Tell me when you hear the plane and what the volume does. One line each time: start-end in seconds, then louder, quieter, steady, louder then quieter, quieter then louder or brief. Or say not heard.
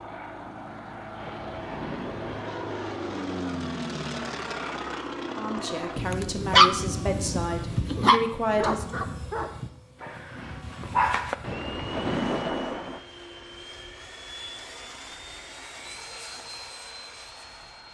0.0-17.9 quieter.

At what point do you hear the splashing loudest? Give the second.
12 s.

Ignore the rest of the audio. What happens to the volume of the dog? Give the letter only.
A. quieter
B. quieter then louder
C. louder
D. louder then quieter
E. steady
A.